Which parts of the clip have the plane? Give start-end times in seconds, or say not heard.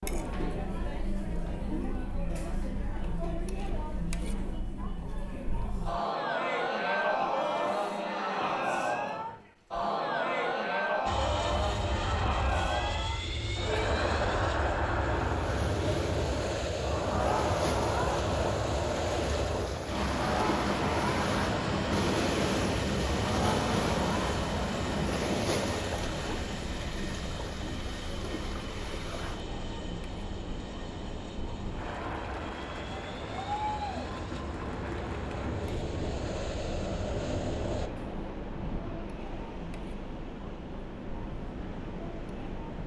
11.1-37.9.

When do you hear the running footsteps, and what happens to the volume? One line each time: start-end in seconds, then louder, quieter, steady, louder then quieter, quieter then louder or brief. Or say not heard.
not heard.